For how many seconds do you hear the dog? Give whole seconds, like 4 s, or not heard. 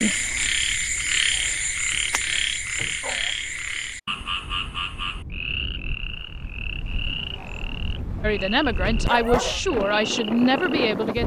4 s.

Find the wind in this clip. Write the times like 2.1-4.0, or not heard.
4.4-11.2.